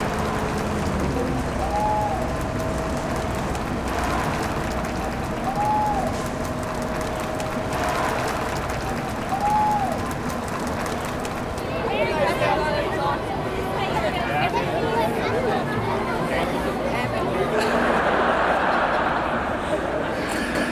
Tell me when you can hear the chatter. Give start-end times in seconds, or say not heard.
0.0-20.6.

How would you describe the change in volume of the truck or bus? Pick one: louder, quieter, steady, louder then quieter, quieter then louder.
quieter.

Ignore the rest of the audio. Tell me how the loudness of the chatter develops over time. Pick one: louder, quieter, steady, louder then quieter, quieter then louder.
louder.